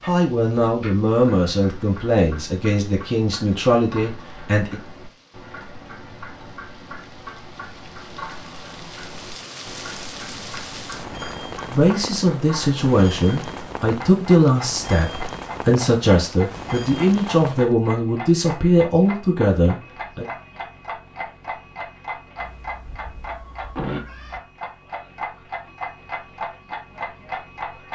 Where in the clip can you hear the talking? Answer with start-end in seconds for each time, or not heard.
0.0-4.8, 11.7-20.2.